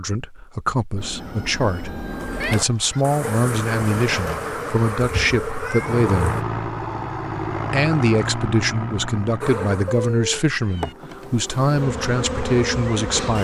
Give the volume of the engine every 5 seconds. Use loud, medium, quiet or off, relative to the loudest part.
medium, loud, off.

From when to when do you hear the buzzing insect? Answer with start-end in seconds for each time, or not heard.
2.1-6.5, 9.4-13.3.